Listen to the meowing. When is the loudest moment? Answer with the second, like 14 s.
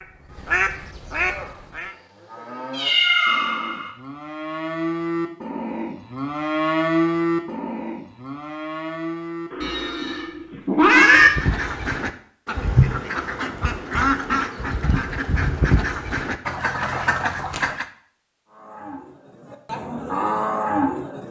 11 s.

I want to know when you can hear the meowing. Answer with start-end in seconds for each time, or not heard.
2.8-3.9, 9.5-11.3, 16.7-17.7.